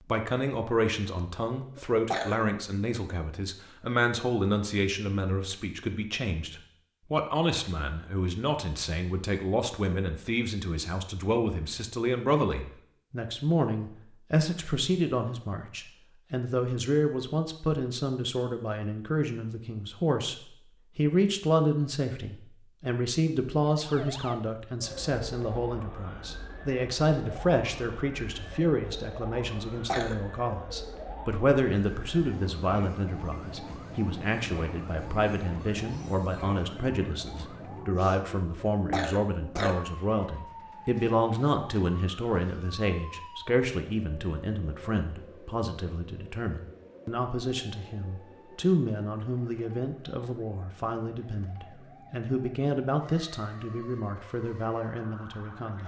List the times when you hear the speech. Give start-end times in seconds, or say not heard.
0.1-55.8.